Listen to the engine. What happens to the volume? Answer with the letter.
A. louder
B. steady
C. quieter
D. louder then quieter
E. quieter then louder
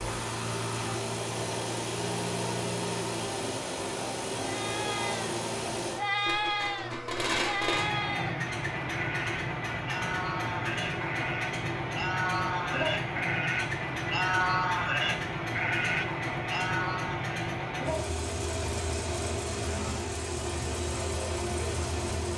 B.